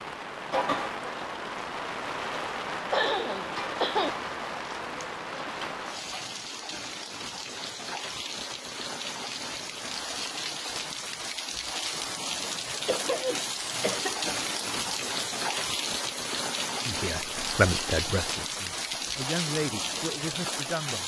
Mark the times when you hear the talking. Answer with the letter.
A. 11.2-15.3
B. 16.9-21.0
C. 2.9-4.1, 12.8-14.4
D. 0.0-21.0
B.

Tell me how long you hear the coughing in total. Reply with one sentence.
You can hear the coughing for 3 seconds altogether.